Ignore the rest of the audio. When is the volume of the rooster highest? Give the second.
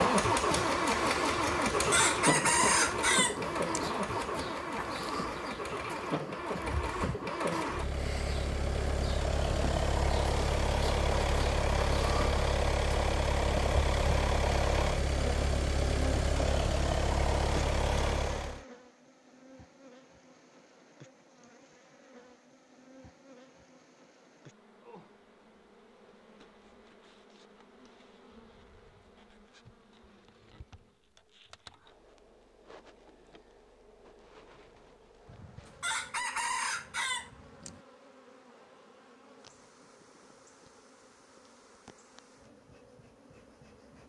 3 s.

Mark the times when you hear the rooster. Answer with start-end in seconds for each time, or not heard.
1.4-3.9, 35.2-37.8.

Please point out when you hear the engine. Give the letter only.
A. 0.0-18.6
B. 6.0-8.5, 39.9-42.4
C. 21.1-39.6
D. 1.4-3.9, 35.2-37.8
A.